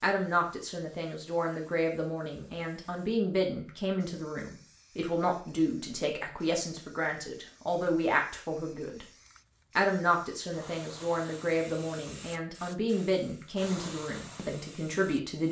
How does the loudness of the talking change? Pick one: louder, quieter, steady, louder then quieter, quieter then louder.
steady.